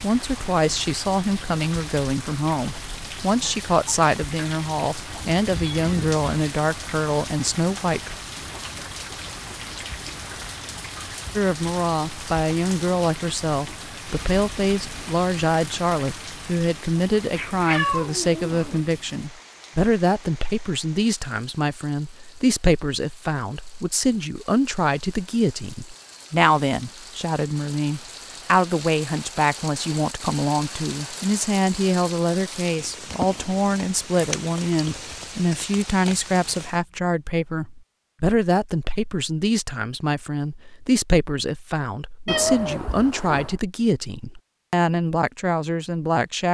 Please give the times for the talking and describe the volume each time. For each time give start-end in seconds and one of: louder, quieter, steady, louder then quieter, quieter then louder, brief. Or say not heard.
0.0-8.2 steady
11.3-46.5 steady.